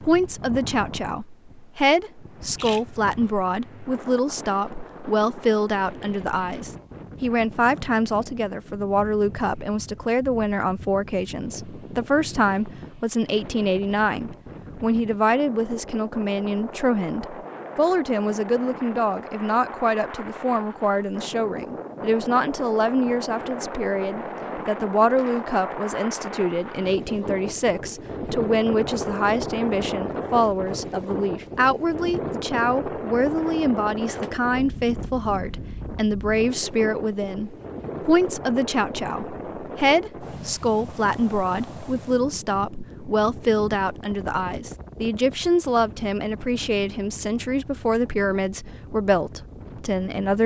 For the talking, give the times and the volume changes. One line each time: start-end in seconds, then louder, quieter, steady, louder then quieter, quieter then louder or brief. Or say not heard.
0.0-50.4 steady.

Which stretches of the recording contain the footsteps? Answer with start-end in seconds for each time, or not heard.
not heard.